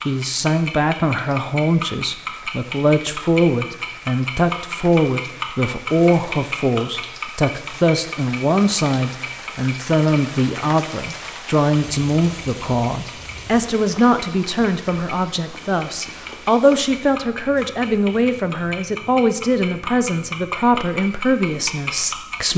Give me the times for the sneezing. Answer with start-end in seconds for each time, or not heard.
not heard.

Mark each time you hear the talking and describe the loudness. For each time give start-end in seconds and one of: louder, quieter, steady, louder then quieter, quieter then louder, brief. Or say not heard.
0.1-22.5 steady.